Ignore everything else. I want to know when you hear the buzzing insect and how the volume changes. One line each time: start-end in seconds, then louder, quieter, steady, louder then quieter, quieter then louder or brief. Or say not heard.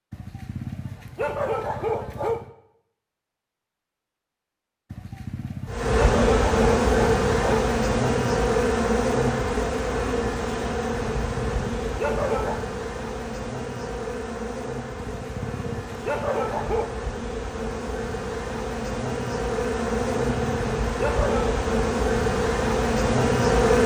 5.7-23.8 quieter then louder.